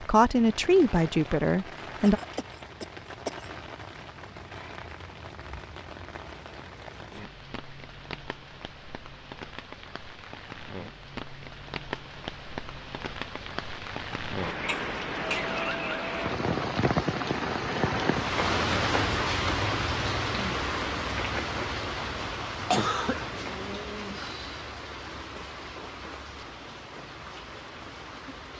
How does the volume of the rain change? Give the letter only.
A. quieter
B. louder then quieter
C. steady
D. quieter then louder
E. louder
B.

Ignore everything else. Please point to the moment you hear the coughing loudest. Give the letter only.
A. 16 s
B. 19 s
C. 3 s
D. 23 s
D.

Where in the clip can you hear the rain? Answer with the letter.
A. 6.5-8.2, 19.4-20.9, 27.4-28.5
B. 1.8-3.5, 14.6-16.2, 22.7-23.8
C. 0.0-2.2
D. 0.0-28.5
D.